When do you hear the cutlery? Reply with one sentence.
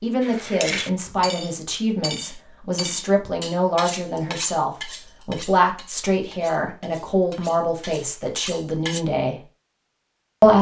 The cutlery can be heard from 0.2 to 9.1 s.